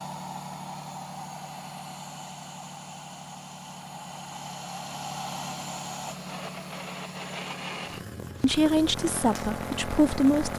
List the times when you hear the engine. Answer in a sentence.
The engine can be heard from 0.0 to 10.5 s.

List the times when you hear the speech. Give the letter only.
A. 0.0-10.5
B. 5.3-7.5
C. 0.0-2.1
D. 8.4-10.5
D.